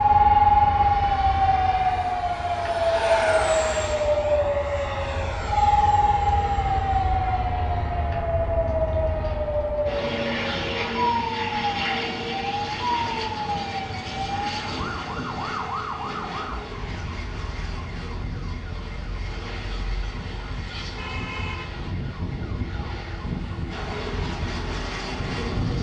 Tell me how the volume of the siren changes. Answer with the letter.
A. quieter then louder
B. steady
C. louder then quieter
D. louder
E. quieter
E.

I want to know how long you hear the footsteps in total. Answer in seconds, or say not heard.
not heard.